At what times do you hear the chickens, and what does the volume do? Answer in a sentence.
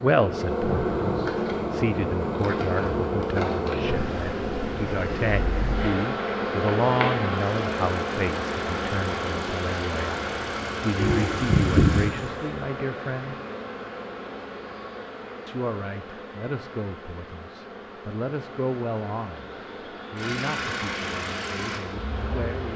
The chickens can't be heard in this clip.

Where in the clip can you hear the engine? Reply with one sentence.
The engine can be heard from 7.3 to 12.1 s and from 20.1 to 22.6 s.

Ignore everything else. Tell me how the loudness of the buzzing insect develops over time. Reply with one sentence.
The volume of the buzzing insect goes down.